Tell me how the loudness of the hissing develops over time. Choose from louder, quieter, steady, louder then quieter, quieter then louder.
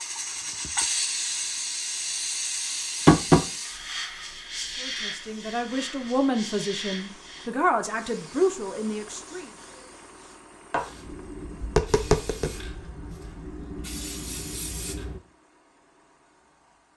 quieter.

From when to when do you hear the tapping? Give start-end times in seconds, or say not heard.
3.0-3.5, 11.3-12.8.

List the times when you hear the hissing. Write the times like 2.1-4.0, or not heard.
0.0-15.2.